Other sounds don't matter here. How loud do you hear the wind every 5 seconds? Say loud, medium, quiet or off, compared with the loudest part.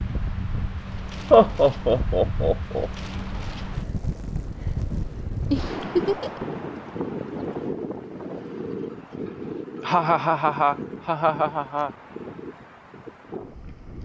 loud, loud, medium.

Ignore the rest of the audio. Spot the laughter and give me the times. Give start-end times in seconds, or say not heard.
1.3-2.9, 5.5-6.5, 9.8-11.9.